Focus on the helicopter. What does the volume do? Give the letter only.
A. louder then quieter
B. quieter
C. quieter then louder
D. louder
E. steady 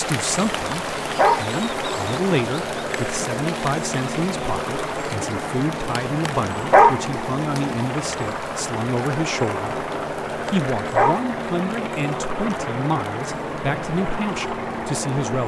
E.